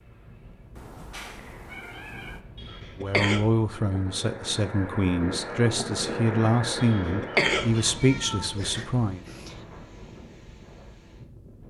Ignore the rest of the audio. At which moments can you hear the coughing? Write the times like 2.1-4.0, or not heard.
2.5-3.4, 6.8-7.9.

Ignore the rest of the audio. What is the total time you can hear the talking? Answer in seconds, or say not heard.
6 s.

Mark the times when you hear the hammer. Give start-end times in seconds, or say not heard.
not heard.